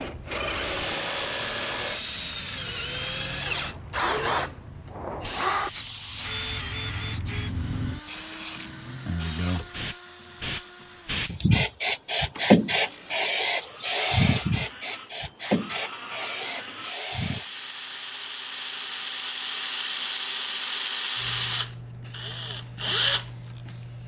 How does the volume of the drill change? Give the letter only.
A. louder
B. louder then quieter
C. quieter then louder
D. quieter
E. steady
C.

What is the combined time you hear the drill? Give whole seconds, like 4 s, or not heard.
24 s.